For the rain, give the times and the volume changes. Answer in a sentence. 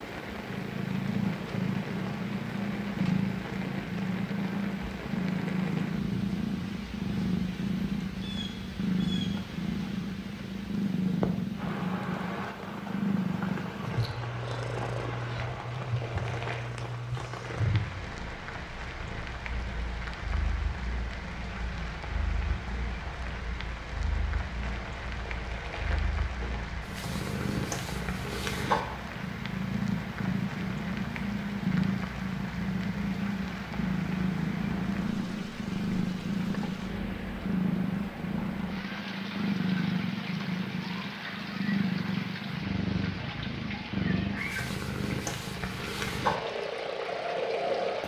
The rain can be heard from 0.0 to 48.0 s, at a steady volume.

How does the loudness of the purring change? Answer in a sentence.
The loudness of the purring goes down, then up.